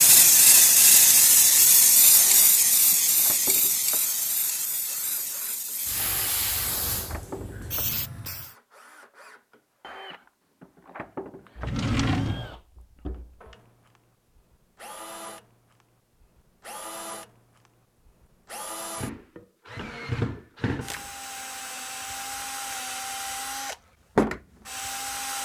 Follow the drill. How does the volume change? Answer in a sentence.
The volume of the drill goes up.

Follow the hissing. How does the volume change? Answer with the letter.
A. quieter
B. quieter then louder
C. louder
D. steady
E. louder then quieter
A.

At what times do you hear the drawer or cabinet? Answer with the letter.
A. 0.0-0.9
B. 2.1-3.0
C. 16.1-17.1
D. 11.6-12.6
D.